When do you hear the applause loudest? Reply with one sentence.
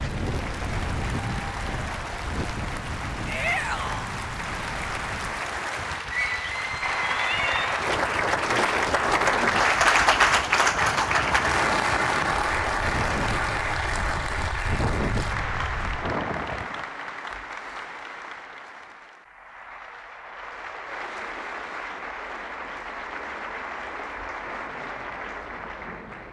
The volume of the applause peaks at 10 seconds.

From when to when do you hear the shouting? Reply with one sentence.
The shouting can be heard from 3.2 to 4.1 s.